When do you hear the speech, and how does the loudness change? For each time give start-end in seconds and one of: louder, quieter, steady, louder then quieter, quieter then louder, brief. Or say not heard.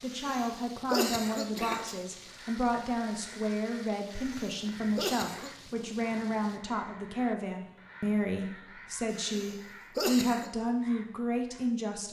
0.0-12.0 steady.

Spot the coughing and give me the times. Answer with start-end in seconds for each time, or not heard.
0.1-2.0, 4.2-5.5, 9.2-10.5.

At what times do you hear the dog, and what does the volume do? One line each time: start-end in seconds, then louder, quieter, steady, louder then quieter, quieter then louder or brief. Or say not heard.
not heard.